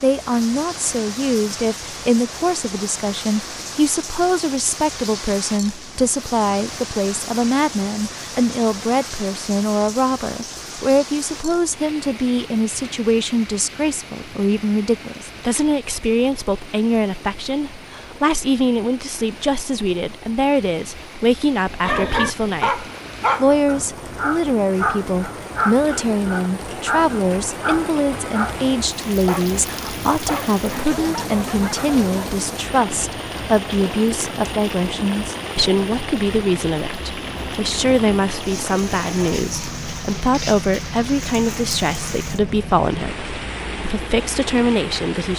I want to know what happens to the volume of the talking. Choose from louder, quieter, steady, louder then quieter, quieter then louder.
steady.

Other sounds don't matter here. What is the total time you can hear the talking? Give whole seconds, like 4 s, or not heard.
45 s.